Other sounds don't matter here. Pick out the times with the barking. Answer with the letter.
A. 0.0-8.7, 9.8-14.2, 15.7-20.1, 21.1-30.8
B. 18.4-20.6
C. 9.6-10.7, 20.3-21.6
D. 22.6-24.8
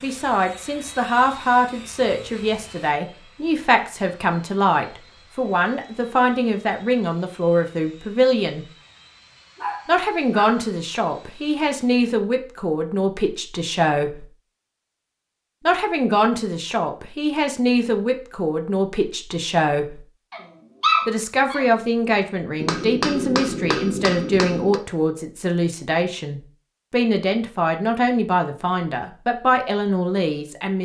C.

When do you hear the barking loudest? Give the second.
21 s.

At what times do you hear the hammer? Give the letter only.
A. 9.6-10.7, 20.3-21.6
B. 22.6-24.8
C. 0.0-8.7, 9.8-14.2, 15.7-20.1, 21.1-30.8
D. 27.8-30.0
B.